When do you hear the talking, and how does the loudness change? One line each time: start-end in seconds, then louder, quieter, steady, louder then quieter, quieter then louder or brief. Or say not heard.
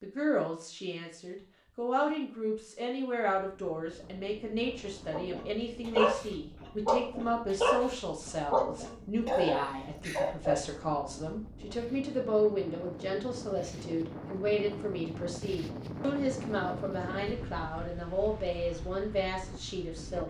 0.0-20.2 steady.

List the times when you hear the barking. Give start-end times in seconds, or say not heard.
5.1-10.6.